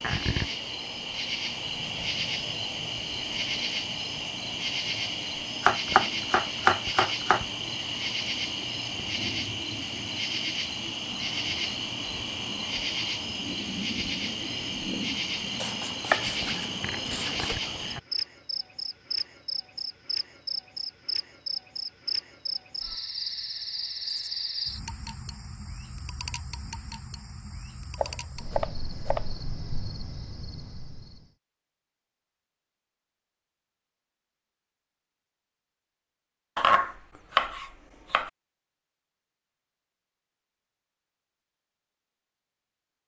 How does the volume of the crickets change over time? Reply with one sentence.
The volume of the crickets goes down.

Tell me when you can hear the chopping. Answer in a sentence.
The chopping can be heard from 5.6 to 7.5 s, from 15.6 to 17.6 s, from 27.9 to 29.3 s and from 36.5 to 38.3 s.